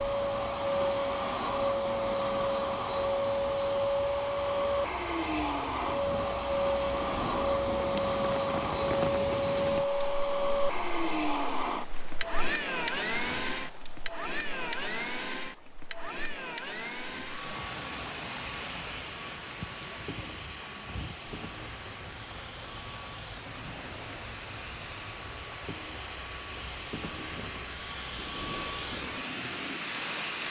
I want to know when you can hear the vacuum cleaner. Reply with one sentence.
You can hear the vacuum cleaner from 0.0 to 30.4 s.